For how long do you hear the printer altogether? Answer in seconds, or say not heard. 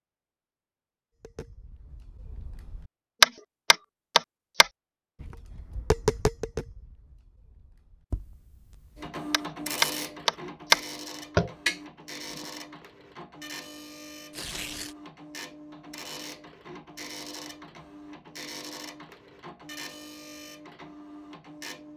13 s.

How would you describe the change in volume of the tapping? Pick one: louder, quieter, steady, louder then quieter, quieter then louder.
quieter then louder.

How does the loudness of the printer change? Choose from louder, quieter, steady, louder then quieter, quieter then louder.
quieter.